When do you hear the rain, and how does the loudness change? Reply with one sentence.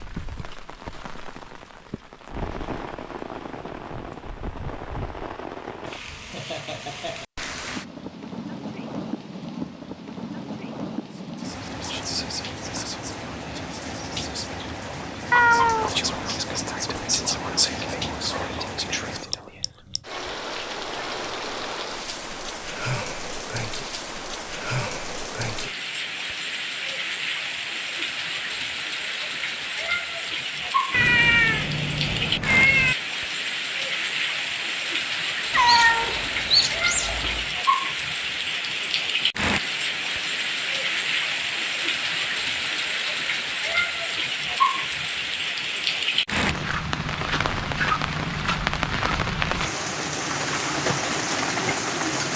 You can hear the rain from 0.0 to 52.3 s, getting louder.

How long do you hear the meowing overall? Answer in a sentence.
The meowing can be heard for 5 seconds in total.